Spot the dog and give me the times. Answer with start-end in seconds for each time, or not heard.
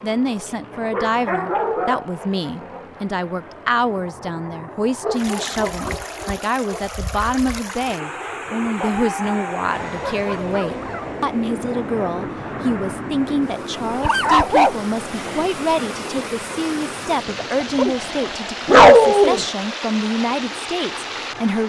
0.9-2.1, 5.0-6.8, 8.8-11.1, 13.8-15.5, 17.6-19.4.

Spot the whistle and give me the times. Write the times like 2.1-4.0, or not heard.
not heard.